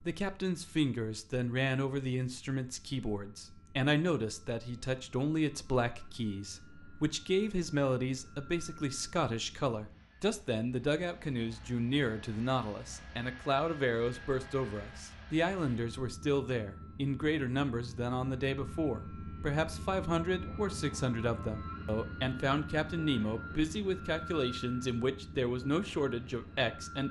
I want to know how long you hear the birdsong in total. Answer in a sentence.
You can't hear the birdsong here.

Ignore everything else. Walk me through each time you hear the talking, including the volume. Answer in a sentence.
The talking can be heard from 0.0 to 27.0 s, at a steady volume.